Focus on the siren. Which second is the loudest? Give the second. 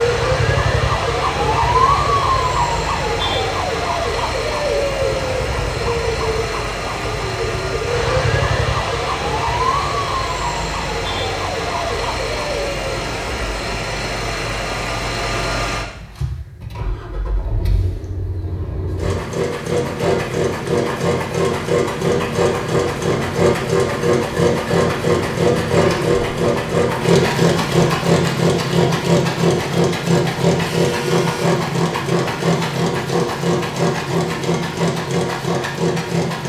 2 s.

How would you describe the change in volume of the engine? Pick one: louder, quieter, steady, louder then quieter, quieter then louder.
louder.